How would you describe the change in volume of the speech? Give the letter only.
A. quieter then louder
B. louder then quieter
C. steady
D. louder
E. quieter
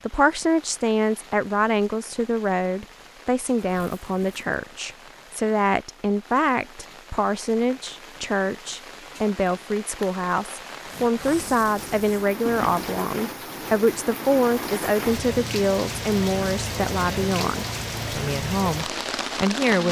C.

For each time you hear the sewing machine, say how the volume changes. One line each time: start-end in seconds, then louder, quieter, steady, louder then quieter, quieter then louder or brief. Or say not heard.
not heard.